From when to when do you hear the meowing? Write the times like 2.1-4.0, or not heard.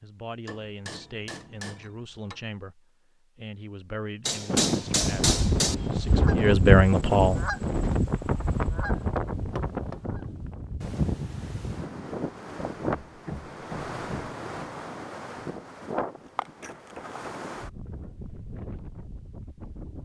not heard.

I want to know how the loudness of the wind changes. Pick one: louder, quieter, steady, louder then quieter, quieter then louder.
quieter.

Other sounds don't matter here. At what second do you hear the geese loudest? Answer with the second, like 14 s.
7 s.